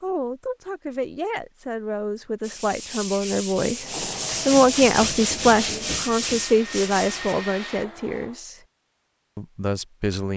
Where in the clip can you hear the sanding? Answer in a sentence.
You can hear the sanding from 2.4 to 7.3 s.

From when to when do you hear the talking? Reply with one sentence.
The talking can be heard from 0.0 to 8.6 s and from 9.3 to 10.3 s.